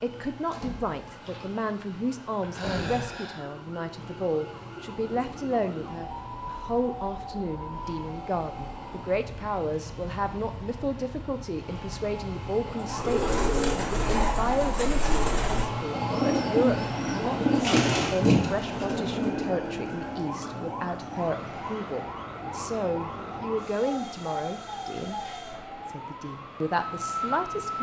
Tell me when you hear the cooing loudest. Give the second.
18 s.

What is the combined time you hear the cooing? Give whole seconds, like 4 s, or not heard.
7 s.